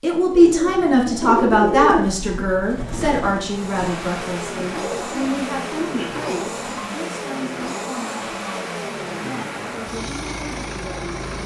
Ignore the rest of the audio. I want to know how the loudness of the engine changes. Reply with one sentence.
The volume of the engine stays about the same.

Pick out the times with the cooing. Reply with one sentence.
The cooing can be heard from 0.2 to 6.9 s.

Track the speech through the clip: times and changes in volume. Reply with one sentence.
You can hear the speech from 0.0 to 11.2 s, getting quieter.